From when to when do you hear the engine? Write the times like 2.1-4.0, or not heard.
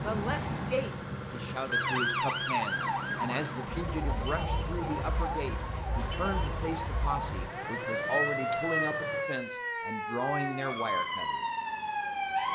0.0-9.3.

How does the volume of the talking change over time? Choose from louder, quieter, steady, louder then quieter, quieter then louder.
steady.